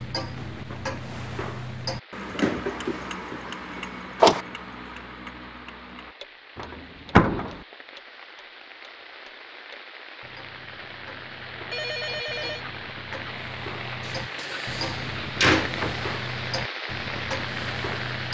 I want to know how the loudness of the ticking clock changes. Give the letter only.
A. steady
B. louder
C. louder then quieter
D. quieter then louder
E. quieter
D.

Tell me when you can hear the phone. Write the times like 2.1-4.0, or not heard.
11.7-12.7.